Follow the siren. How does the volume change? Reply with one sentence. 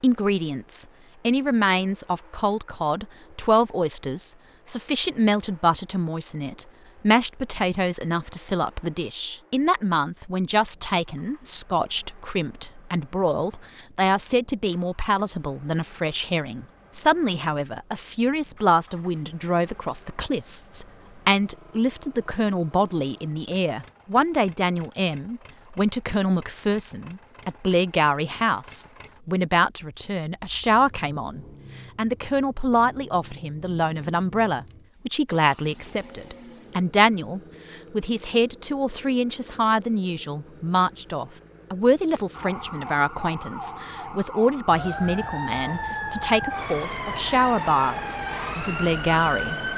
The loudness of the siren goes up.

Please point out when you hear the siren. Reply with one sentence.
The siren can be heard from 42.3 to 49.7 s.